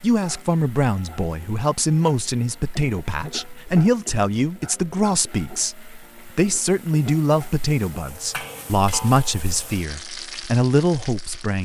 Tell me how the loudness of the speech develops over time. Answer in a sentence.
The volume of the speech stays about the same.